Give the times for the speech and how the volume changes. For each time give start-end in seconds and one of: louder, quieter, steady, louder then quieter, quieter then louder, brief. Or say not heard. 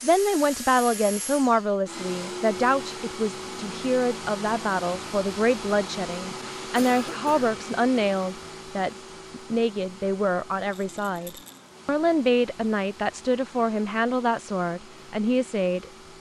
0.0-15.9 steady.